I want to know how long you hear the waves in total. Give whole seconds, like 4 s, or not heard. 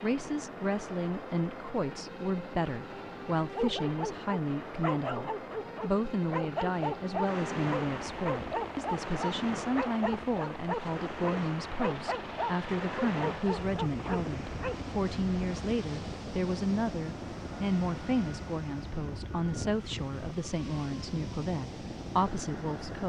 16 s.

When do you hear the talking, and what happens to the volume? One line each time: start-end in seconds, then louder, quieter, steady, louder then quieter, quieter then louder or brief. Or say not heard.
0.0-23.0 steady.